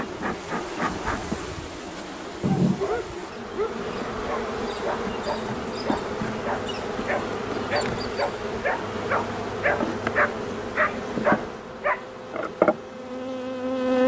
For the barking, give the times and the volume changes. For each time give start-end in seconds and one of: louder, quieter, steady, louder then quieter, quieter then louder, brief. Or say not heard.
2.6-12.0 louder.